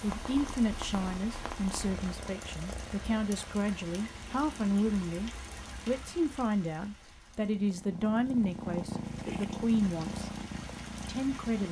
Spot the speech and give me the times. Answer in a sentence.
You can hear the speech from 0.0 to 10.3 s and from 11.1 to 11.6 s.